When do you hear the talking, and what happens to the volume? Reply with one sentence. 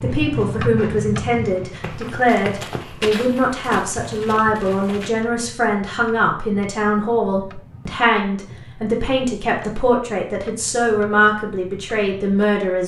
You can hear the talking from 0.0 to 12.8 s, at a steady volume.